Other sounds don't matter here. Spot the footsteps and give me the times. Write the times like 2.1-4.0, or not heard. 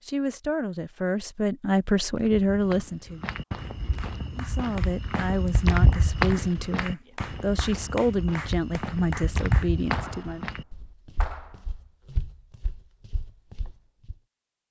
2.1-14.2.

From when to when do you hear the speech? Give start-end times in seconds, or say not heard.
0.1-3.2, 4.3-10.5.